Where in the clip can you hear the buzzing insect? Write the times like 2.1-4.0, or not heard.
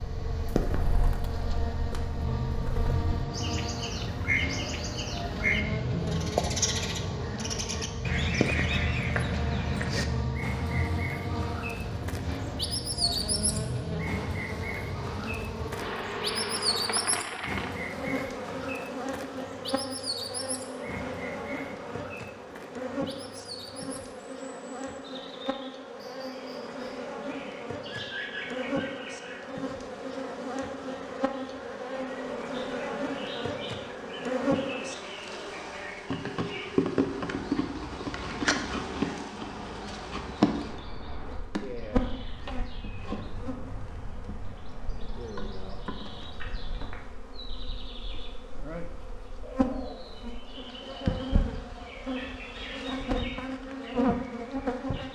0.0-55.1.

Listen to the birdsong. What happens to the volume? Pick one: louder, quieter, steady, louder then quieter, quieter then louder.
quieter.